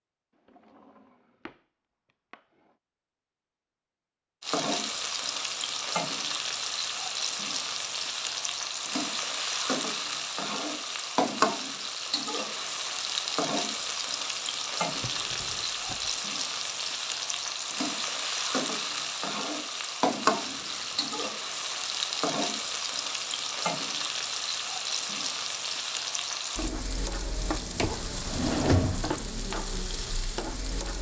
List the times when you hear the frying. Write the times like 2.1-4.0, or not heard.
4.4-30.9.